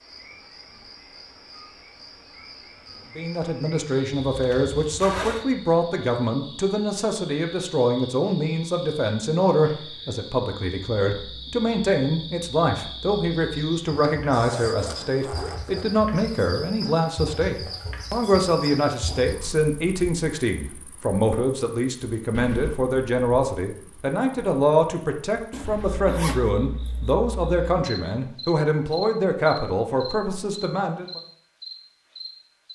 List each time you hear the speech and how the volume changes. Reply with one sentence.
The speech can be heard from 3.1 to 31.2 s, at a steady volume.